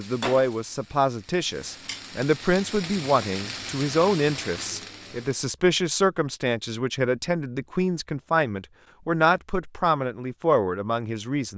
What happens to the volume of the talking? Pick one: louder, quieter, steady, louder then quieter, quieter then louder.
steady.